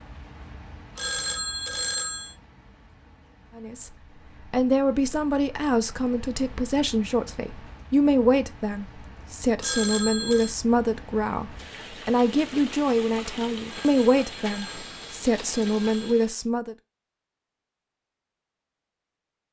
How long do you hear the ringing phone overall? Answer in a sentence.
You can hear the ringing phone for 5 seconds altogether.